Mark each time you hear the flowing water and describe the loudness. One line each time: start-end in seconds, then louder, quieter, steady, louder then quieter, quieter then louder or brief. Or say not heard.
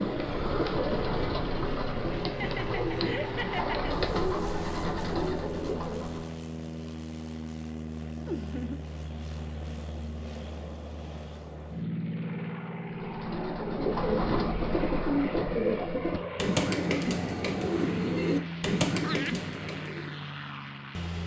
not heard.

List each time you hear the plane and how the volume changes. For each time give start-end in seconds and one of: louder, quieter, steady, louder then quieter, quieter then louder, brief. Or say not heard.
0.0-21.2 steady.